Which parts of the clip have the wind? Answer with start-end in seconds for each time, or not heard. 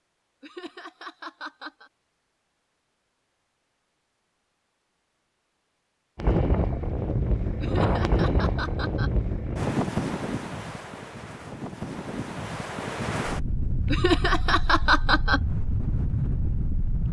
6.2-17.0.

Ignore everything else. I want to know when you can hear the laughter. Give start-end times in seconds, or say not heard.
0.4-1.9, 7.6-9.1, 13.9-15.4.